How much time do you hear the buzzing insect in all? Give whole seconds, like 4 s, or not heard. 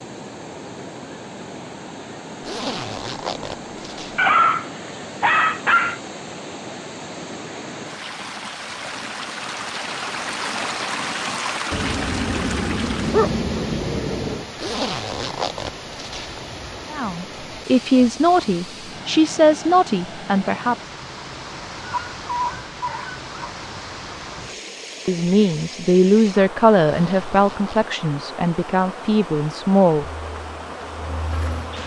2 s.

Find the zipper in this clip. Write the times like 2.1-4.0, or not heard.
2.4-4.3, 14.6-16.6, 26.8-27.9.